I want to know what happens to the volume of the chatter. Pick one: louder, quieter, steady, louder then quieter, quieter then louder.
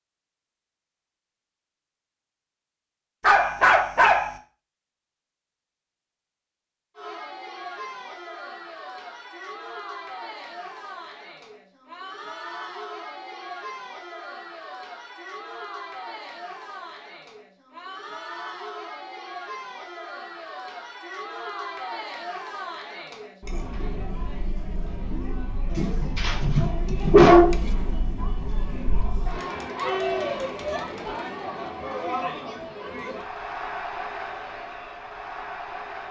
louder.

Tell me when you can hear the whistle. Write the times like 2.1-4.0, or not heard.
not heard.